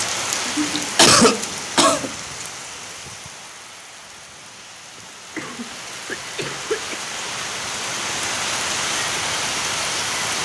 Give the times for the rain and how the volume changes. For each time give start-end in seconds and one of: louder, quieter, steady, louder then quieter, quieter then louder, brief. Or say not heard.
0.0-10.3 quieter then louder.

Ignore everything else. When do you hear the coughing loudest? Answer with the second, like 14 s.
1 s.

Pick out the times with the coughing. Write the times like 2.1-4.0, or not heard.
0.3-2.1, 5.3-7.0.